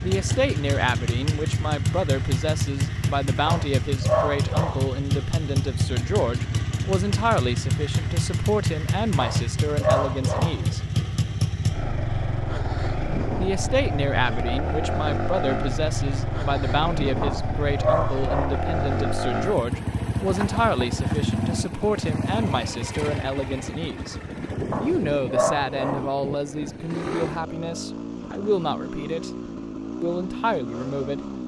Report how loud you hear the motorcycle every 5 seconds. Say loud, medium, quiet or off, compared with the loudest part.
loud, loud, loud, loud, loud, medium, medium.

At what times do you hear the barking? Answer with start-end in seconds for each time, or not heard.
3.5-5.0, 9.2-10.7, 17.2-18.6, 24.7-26.2.